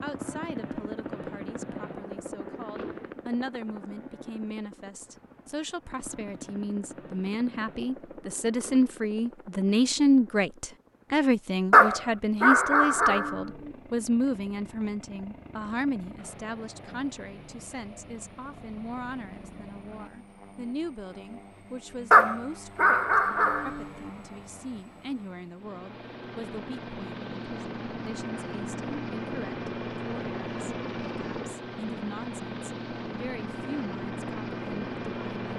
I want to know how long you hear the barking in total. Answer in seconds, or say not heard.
4 s.